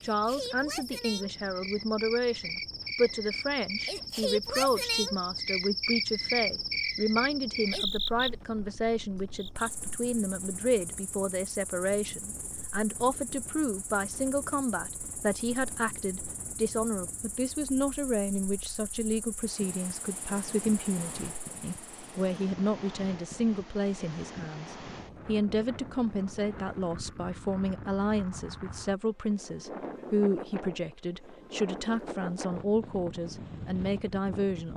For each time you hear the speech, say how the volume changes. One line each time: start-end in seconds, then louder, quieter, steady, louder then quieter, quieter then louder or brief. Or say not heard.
0.0-34.7 steady.